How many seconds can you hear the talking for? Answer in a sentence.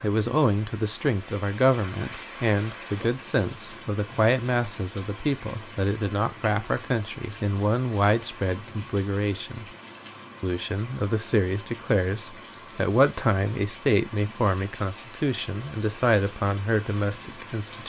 You can hear the talking for 17 seconds altogether.